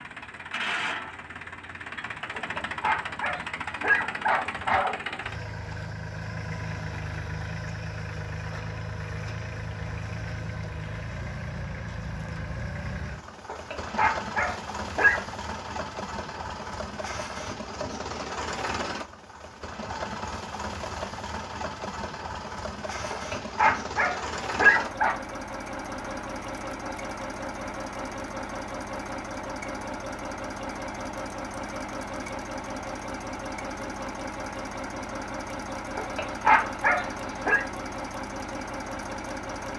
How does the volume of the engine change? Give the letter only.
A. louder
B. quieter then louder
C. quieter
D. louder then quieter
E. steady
E.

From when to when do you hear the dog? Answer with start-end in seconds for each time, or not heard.
2.4-5.0, 13.4-15.2, 23.1-25.1, 36.0-37.6.